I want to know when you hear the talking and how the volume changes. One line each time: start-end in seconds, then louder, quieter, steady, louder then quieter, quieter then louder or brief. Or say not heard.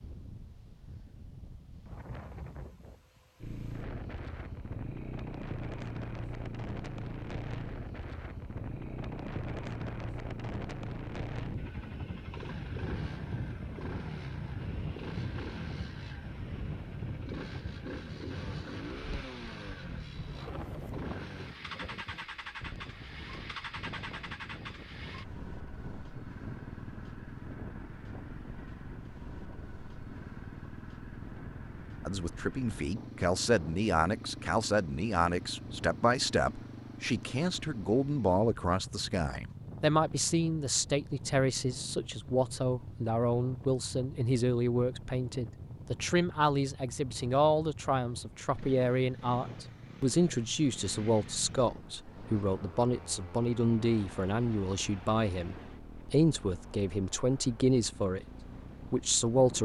32.0-58.2 steady
58.9-59.6 brief.